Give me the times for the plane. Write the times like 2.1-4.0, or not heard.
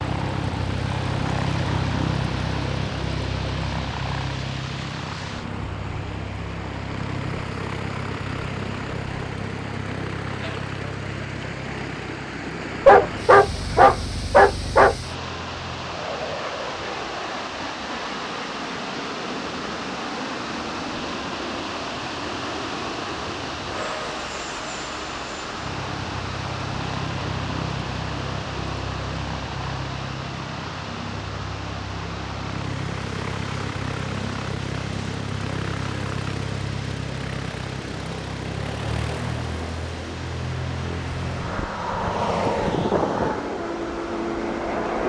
0.0-45.0.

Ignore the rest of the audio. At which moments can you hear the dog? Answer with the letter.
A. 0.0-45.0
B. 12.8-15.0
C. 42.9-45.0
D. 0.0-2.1
B.